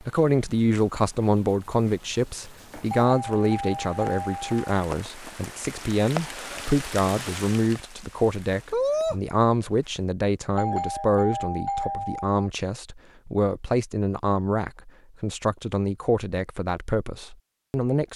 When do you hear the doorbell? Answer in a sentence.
You can hear the doorbell from 2.9 to 4.6 s and from 10.6 to 12.3 s.